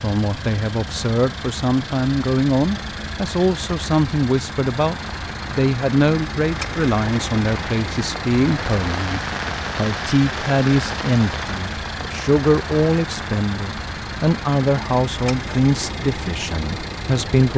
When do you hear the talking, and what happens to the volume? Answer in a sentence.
The talking can be heard from 0.0 to 17.5 s, at a steady volume.